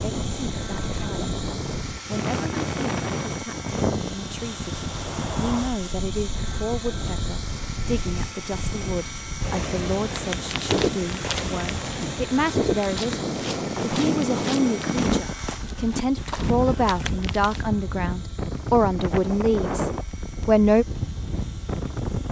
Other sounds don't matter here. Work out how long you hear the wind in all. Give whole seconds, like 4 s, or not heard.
22 s.